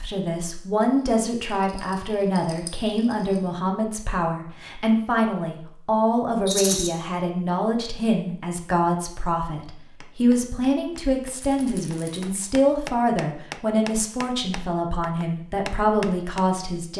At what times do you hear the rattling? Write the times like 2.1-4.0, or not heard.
1.8-3.4, 6.5-6.9, 11.3-12.3.